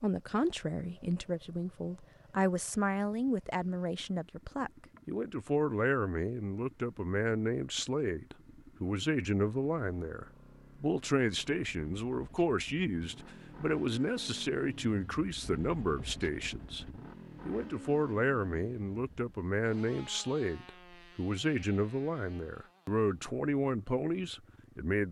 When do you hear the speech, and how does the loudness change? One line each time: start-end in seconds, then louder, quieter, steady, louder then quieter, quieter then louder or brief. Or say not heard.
0.0-25.0 steady.